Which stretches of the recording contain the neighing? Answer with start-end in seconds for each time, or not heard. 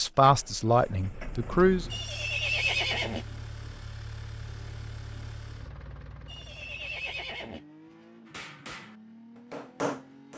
1.9-3.2, 6.2-7.6.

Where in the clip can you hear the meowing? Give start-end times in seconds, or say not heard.
not heard.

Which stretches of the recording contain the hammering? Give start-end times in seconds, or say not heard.
8.2-10.3.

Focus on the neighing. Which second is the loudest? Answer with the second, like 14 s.
3 s.